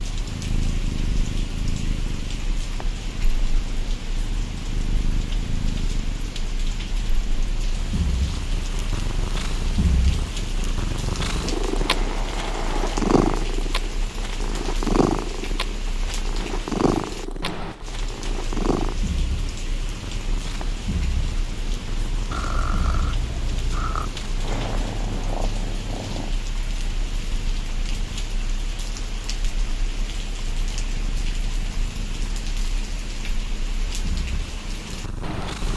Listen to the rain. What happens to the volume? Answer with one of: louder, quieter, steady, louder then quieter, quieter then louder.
steady.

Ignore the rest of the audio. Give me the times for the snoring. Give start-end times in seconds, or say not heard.
11.7-13.6, 22.3-24.1.